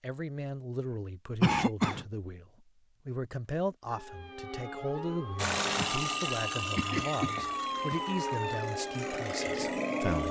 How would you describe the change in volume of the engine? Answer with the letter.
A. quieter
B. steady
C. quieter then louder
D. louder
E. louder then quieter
C.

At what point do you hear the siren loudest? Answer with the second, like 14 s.
8 s.